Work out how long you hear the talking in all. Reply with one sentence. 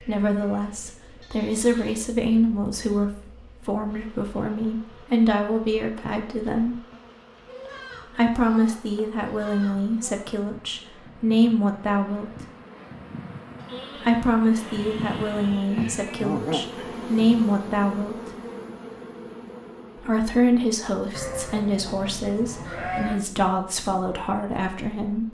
The talking can be heard for 21 seconds in total.